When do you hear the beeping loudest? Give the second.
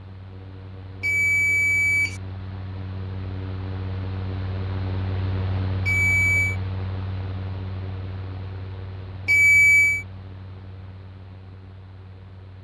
10 s.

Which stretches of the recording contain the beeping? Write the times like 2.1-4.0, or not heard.
1.0-2.2, 5.8-6.5, 9.2-10.1.